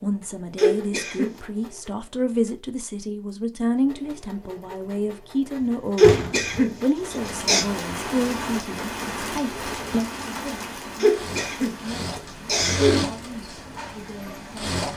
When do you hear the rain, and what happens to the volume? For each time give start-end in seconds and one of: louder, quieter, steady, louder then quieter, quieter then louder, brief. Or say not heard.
6.9-14.8 quieter.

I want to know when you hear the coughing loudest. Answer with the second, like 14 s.
6 s.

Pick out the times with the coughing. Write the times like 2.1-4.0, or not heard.
0.6-1.4, 6.0-7.7, 11.0-12.9.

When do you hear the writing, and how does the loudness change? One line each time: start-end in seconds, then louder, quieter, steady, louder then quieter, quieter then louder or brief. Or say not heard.
not heard.